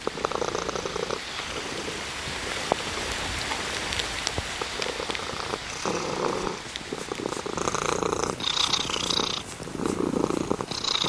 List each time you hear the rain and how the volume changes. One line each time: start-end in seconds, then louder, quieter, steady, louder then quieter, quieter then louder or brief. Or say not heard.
0.0-11.0 louder then quieter.